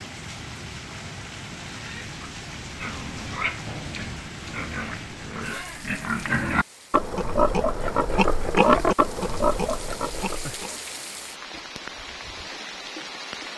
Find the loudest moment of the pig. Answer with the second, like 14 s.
9 s.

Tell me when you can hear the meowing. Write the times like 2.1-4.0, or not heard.
not heard.